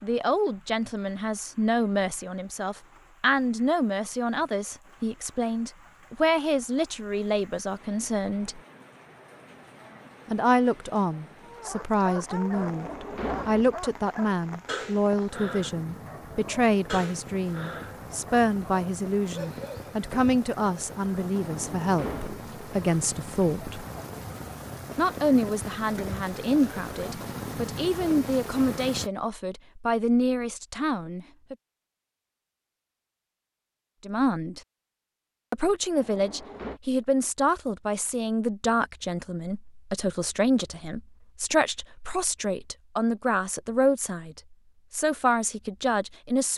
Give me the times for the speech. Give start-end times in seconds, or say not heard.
0.0-8.6, 10.2-23.9, 24.9-31.6, 34.0-34.6, 35.5-46.5.